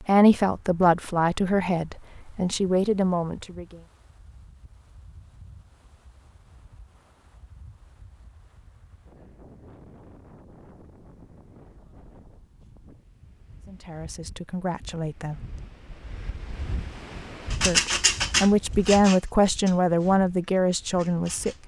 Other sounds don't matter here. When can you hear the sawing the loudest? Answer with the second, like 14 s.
18 s.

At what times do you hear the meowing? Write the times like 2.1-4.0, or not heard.
not heard.